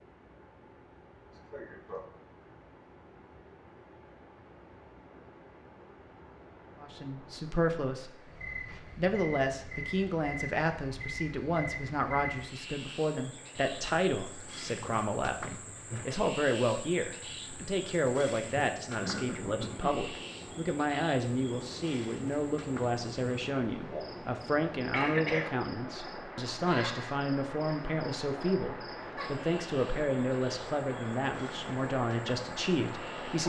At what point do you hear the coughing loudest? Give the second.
25 s.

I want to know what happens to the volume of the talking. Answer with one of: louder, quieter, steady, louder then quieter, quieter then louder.
steady.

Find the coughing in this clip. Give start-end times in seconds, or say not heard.
1.3-2.0, 19.0-20.1, 24.9-25.5.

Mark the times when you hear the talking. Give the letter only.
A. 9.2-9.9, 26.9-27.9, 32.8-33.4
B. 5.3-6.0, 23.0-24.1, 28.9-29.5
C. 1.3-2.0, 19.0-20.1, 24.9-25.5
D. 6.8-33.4
D.